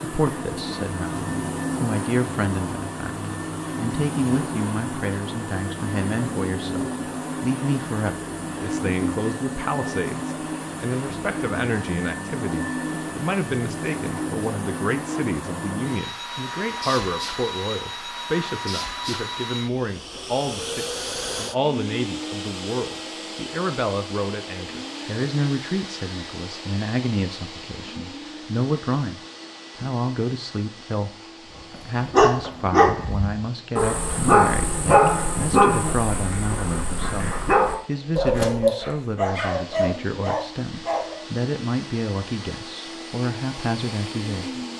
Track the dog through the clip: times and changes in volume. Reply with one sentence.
You can hear the dog from 31.7 to 41.1 s, getting quieter.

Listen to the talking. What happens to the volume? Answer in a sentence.
The volume of the talking stays about the same.